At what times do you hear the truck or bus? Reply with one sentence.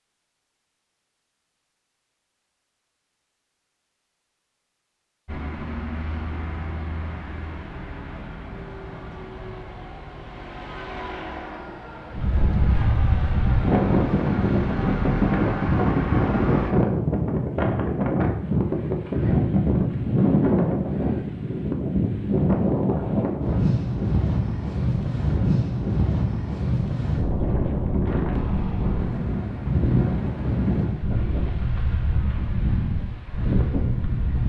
You can hear the truck or bus from 5.2 to 16.8 s.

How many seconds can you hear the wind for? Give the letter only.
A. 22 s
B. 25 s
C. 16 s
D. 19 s
A.